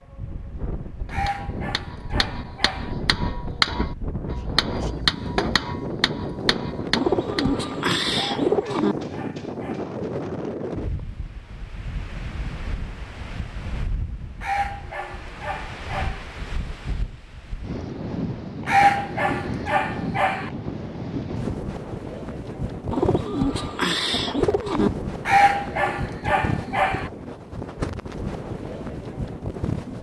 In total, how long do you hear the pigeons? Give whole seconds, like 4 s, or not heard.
4 s.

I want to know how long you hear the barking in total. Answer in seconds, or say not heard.
9 s.